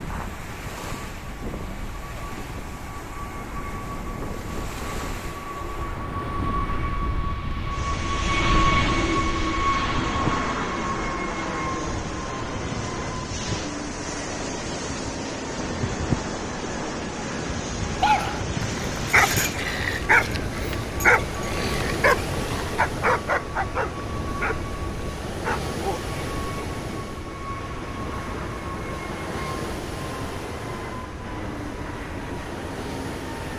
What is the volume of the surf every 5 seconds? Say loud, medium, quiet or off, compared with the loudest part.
medium, medium, loud, loud, loud, loud, medium.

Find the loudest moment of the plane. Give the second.
9 s.